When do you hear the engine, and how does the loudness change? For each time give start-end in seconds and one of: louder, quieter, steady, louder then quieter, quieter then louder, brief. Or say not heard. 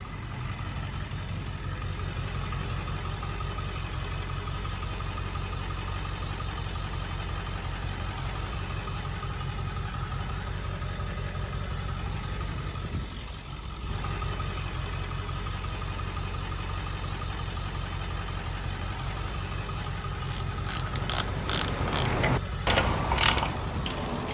0.0-24.2 steady.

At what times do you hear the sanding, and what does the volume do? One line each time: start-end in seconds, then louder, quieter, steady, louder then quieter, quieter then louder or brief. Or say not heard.
not heard.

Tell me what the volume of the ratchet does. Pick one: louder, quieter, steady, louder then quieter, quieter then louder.
louder.